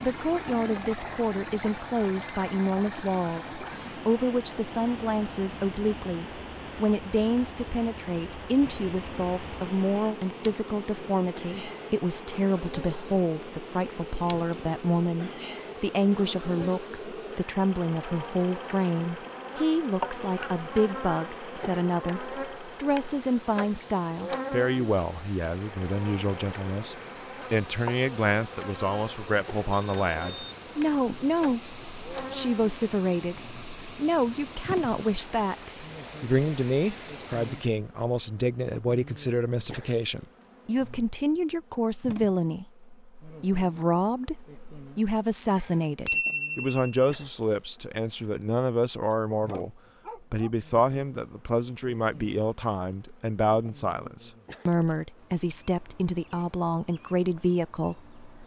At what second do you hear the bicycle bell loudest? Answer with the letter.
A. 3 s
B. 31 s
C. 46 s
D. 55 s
C.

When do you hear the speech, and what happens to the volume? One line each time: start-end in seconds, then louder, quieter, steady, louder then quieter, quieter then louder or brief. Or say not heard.
0.0-58.1 steady.